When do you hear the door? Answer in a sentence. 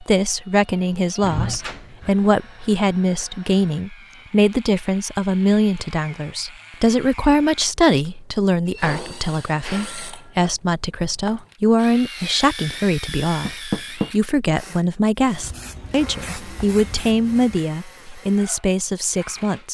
The door can be heard from 1.2 to 2.1 s, from 8.7 to 10.5 s and from 13.4 to 14.1 s.